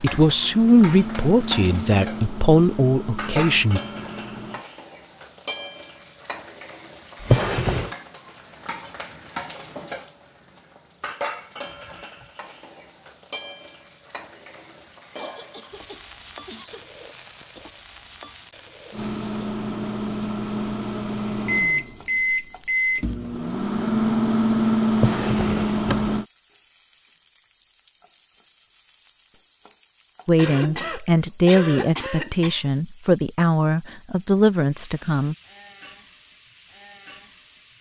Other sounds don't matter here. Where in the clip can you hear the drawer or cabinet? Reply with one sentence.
The drawer or cabinet can be heard from 7.2 to 7.9 s and from 24.9 to 26.1 s.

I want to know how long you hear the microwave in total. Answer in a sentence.
You can hear the microwave for 12 seconds altogether.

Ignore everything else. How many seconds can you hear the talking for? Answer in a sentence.
The talking can be heard for 9 seconds in total.